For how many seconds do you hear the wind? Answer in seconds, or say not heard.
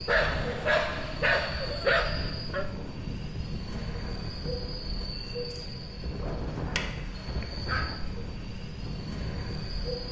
10 s.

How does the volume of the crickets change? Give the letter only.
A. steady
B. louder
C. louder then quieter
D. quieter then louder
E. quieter
A.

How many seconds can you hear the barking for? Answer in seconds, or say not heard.
4 s.